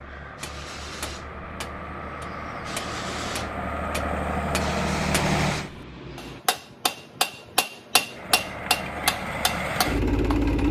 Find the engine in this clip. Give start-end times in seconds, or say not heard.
0.0-5.7, 8.1-10.6.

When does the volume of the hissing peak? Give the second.
5 s.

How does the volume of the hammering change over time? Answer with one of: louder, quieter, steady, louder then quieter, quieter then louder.
louder.